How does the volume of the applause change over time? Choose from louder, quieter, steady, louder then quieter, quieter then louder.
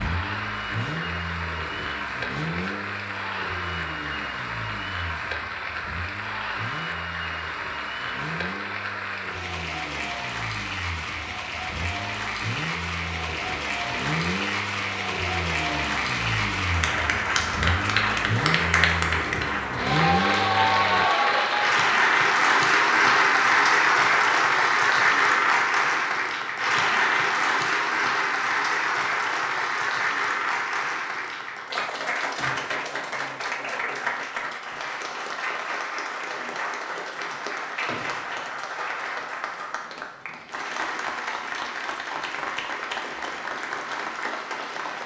louder then quieter.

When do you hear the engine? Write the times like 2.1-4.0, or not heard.
0.0-21.1.